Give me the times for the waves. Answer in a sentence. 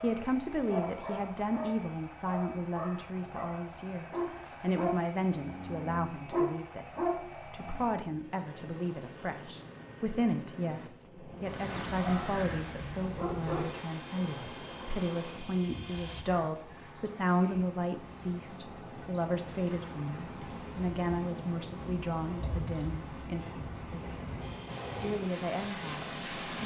The waves can be heard from 11.3 to 26.6 s.